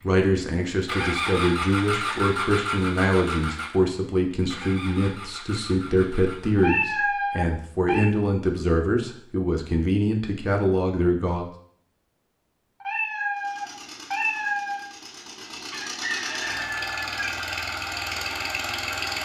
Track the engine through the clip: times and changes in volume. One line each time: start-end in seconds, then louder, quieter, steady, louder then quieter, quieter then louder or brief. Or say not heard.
0.0-6.8 quieter
13.3-19.2 louder.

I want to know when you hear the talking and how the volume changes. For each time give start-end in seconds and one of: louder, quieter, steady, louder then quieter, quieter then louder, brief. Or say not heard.
0.0-11.5 steady.